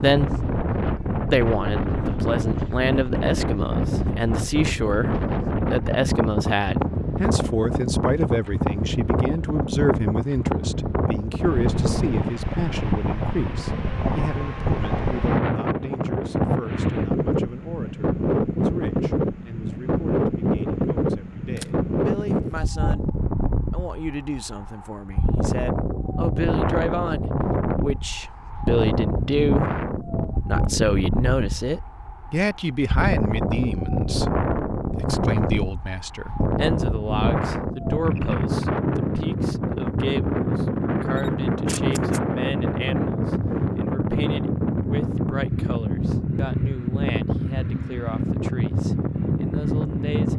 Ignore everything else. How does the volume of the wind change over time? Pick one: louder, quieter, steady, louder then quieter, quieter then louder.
steady.